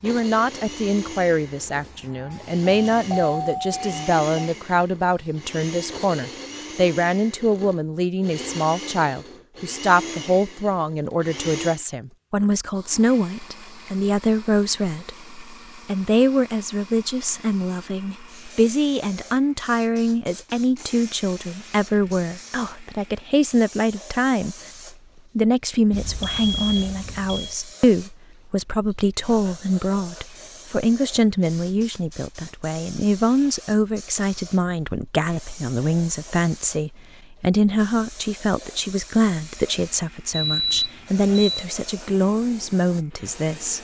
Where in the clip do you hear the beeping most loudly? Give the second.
41 s.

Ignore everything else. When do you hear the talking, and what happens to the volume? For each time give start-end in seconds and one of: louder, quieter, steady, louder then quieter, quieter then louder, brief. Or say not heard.
0.0-24.6 steady
25.4-43.7 steady.